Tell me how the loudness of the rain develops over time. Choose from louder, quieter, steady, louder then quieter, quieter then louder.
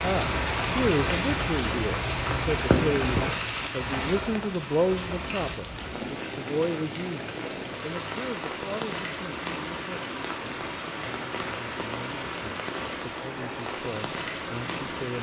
quieter.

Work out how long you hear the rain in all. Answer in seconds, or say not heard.
15 s.